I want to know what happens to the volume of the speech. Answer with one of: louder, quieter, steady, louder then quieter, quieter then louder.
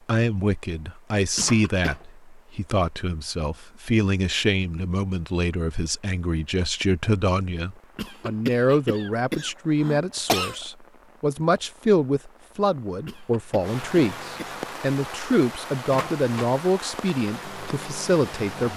steady.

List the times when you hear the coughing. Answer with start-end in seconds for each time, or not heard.
1.4-1.9, 8.0-10.7, 13.1-14.6.